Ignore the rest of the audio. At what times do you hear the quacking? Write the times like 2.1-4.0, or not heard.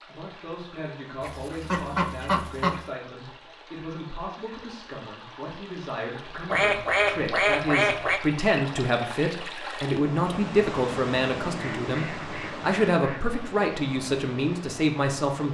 1.2-2.8, 6.5-8.2, 11.6-13.2.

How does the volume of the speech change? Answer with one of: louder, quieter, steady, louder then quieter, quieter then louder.
louder.